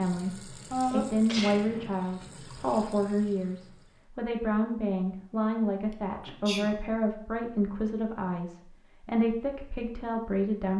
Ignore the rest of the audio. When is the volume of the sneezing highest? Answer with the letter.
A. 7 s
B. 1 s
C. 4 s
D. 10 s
B.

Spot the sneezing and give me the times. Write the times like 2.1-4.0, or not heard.
0.7-1.9, 5.9-6.7.